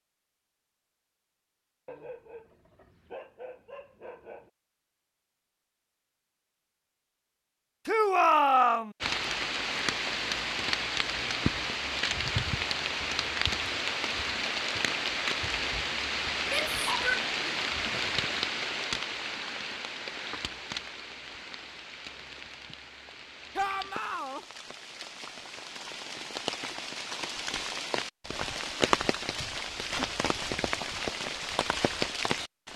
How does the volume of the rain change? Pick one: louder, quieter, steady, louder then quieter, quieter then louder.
quieter then louder.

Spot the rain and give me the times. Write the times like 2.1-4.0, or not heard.
9.0-32.7.